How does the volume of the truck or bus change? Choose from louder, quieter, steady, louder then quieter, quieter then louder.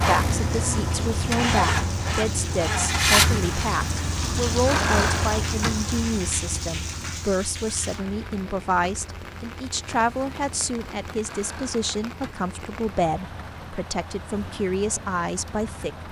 quieter.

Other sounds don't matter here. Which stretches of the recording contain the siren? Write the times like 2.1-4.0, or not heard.
not heard.